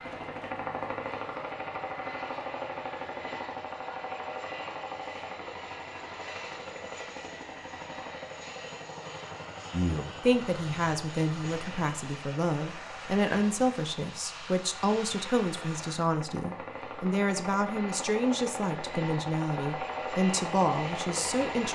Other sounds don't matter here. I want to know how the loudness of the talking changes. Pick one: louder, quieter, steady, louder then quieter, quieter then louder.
steady.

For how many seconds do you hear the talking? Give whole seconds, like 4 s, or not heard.
12 s.